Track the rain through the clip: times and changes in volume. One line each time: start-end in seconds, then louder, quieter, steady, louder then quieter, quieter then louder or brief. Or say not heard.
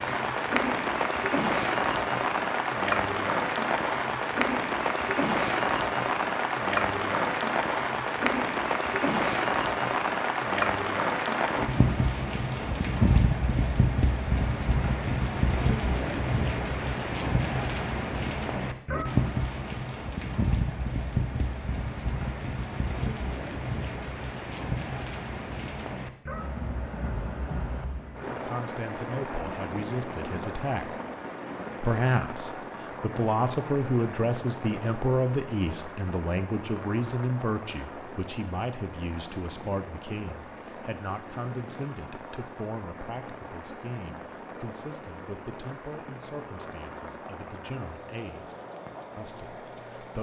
0.0-50.1 quieter.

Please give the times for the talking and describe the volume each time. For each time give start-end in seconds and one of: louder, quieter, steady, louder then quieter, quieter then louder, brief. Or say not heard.
28.3-30.9 brief
31.8-48.5 quieter
49.1-50.1 brief.